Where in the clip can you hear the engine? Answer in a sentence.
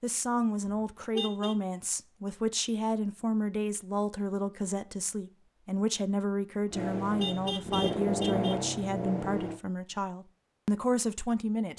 The engine can be heard from 6.7 to 9.6 s.